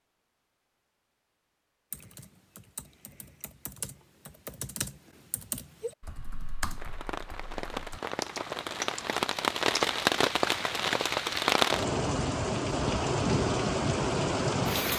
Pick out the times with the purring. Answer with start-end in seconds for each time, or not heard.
not heard.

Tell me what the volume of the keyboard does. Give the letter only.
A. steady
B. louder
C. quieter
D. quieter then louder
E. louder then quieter
B.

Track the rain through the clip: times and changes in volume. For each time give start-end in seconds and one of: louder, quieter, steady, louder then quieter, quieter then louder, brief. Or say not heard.
6.8-14.9 louder.